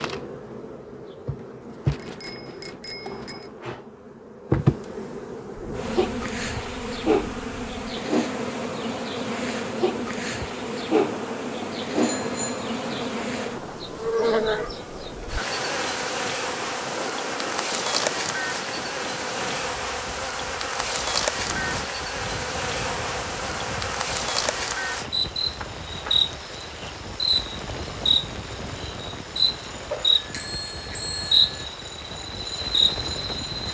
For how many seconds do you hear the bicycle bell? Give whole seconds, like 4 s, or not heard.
4 s.